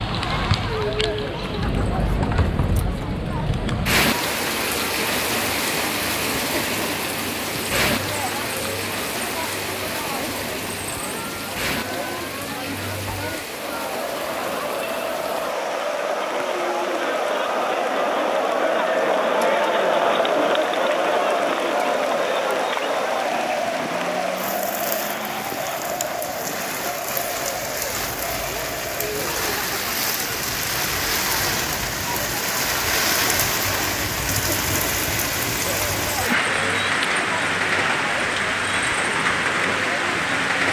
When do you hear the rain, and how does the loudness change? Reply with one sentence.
The rain can be heard from 0.0 to 40.6 s, getting quieter then louder.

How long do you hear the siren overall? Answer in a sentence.
The siren can't be heard in this clip.